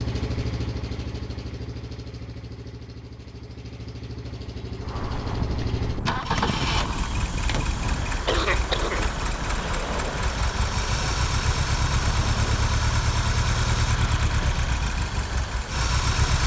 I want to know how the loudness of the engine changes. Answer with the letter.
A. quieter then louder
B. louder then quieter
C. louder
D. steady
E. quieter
C.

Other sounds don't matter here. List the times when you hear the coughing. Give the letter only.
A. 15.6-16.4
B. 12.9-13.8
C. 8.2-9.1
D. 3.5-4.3
C.